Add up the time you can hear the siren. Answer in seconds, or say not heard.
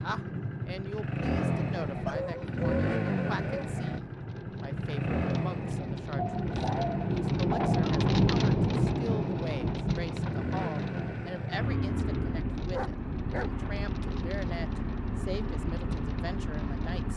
not heard.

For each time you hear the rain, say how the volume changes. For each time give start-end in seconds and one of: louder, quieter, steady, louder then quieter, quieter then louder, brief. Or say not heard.
0.0-17.1 louder then quieter.